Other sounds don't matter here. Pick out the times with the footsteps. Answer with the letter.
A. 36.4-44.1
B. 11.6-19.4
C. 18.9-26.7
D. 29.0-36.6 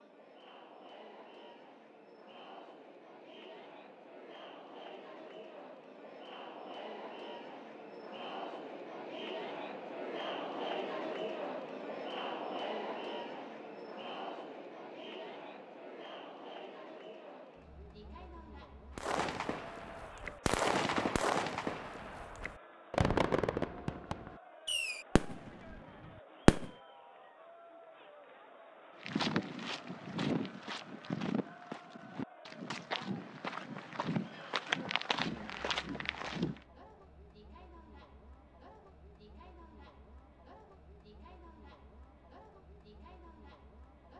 D.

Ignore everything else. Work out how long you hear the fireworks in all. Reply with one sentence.
The fireworks can be heard for 8 seconds in total.